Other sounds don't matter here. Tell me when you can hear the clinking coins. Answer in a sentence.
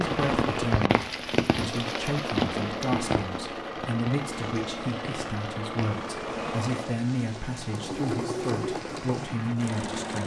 The clinking coins can't be heard in this clip.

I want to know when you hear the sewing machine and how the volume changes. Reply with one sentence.
You can hear the sewing machine from 0.0 to 10.2 s, at a steady volume.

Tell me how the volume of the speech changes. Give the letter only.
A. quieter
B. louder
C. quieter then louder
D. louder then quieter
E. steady
E.